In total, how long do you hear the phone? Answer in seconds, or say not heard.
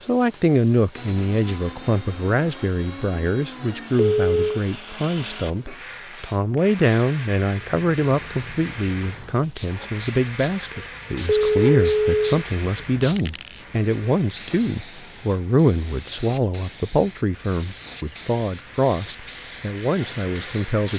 2 s.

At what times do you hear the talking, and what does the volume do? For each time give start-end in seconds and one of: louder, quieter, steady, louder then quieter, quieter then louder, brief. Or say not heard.
0.0-20.9 steady.